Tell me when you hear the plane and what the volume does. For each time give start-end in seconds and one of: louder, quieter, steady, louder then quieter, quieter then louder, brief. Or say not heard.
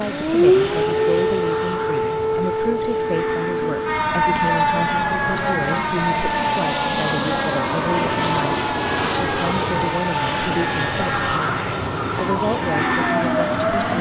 0.0-13.9 louder.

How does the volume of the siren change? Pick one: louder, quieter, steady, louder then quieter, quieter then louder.
quieter.